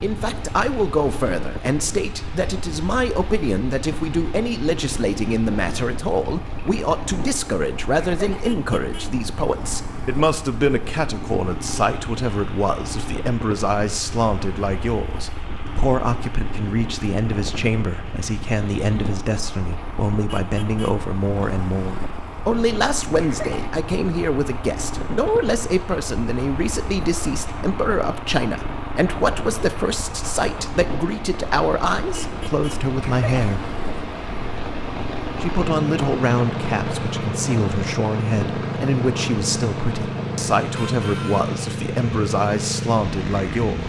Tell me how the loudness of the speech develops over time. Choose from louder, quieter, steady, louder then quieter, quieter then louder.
steady.